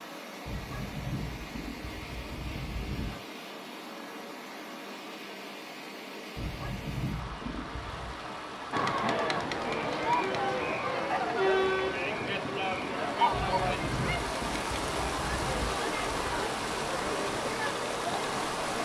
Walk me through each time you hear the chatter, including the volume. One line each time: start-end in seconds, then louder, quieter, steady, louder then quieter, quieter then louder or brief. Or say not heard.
8.7-18.7 quieter.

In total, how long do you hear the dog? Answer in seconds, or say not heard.
7 s.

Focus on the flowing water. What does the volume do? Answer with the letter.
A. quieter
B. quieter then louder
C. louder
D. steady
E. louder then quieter
C.